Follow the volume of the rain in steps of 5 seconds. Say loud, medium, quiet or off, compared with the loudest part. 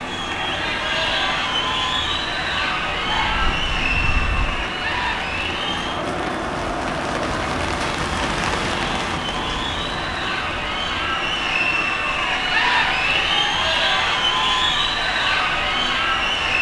medium, loud, medium, medium.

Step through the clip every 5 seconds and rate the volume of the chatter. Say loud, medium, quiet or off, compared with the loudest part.
loud, medium, loud, loud.